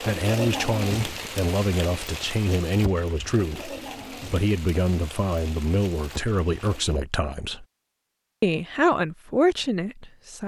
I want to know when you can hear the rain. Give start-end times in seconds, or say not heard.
0.0-7.0.